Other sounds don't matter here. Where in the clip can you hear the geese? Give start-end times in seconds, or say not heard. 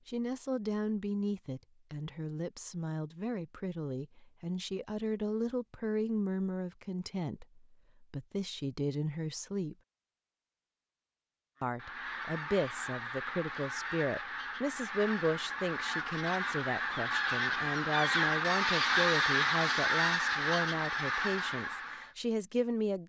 11.6-22.1.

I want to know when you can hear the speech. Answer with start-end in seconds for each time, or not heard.
0.1-9.8, 11.6-23.0.